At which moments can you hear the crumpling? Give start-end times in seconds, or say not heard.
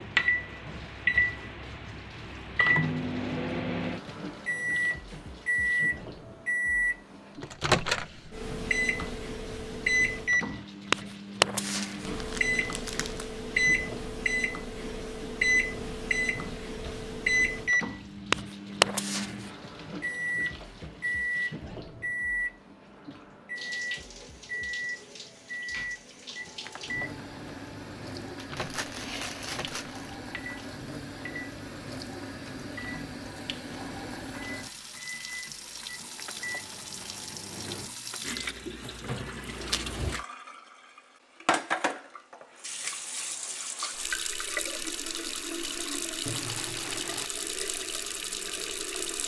11.6-13.2, 28.4-30.1, 46.2-47.3.